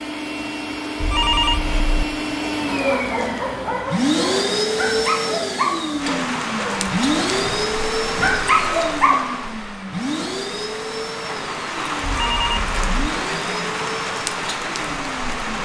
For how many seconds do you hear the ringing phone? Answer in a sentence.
You can hear the ringing phone for 2 seconds altogether.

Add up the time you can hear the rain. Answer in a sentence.
The rain can be heard for 10 seconds in total.